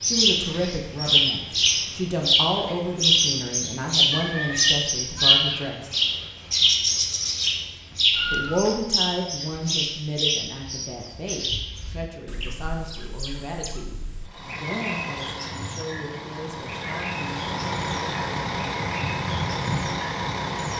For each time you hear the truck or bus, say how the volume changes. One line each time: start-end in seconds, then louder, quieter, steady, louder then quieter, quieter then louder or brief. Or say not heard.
14.2-20.7 louder.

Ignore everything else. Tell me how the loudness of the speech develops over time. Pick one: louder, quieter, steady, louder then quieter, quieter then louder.
quieter.